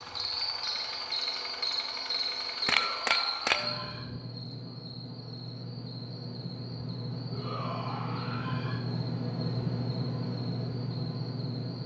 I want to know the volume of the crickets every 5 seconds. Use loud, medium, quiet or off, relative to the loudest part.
loud, quiet, quiet.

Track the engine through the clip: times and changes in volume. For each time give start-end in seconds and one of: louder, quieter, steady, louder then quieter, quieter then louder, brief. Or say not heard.
0.0-11.8 louder.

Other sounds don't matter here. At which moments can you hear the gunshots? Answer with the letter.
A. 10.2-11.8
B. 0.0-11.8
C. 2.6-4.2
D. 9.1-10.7
C.